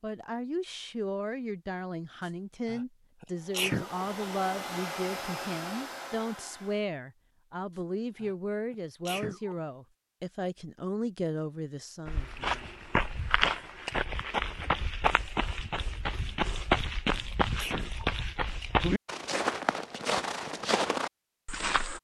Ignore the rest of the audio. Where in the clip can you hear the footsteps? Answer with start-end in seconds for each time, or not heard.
12.1-21.9.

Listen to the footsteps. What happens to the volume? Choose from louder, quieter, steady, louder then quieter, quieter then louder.
steady.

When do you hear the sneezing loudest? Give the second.
4 s.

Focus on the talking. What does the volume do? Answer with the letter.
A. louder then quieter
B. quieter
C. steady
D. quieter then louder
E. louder
C.